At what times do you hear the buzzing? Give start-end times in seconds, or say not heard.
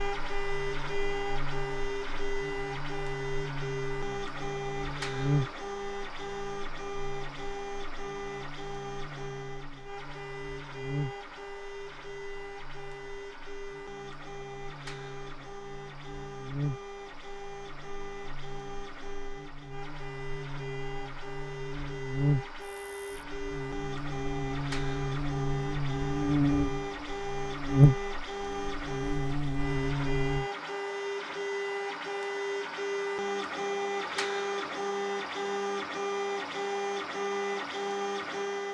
0.0-30.4.